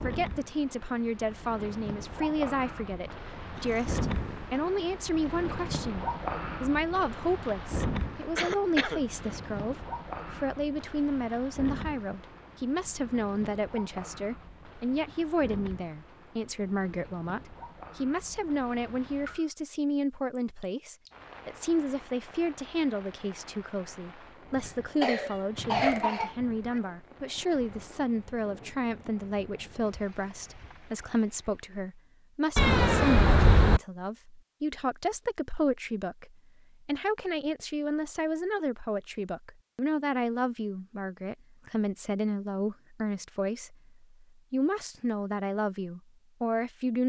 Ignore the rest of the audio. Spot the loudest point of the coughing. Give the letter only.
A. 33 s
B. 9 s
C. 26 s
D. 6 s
C.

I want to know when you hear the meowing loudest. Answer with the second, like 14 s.
33 s.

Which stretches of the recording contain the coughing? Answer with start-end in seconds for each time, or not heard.
8.3-9.3, 24.6-26.4.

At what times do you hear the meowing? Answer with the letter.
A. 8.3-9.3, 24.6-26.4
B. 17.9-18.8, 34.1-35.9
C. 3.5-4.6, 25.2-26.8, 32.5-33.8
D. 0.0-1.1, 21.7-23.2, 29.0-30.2
C.